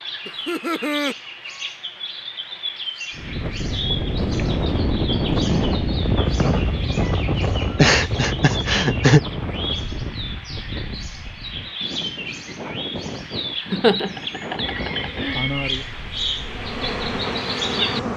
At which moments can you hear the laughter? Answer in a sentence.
The laughter can be heard from 0.2 to 1.1 s, from 7.8 to 9.2 s and from 13.7 to 15.4 s.